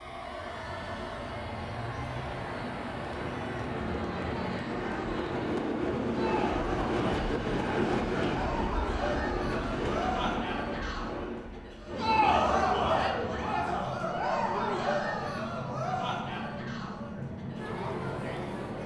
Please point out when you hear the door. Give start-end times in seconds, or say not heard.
not heard.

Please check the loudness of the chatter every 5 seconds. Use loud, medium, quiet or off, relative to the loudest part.
quiet, medium, loud, medium.